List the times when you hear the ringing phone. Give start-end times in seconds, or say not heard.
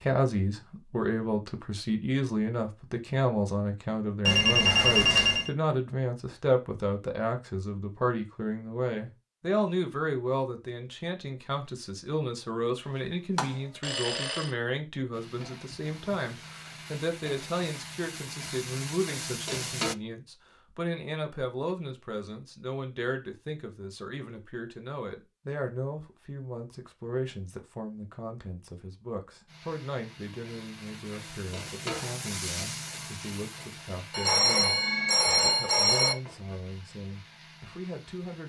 4.2-5.5, 13.3-14.5, 34.1-36.1.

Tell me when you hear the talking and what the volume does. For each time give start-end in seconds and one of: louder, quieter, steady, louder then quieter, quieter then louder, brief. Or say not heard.
0.0-38.4 quieter.